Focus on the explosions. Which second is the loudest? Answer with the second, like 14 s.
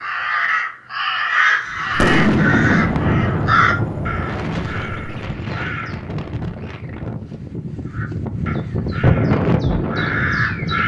2 s.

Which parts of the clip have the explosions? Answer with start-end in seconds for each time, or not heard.
1.9-5.2.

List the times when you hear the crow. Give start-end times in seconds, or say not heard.
0.0-6.0, 7.9-10.8.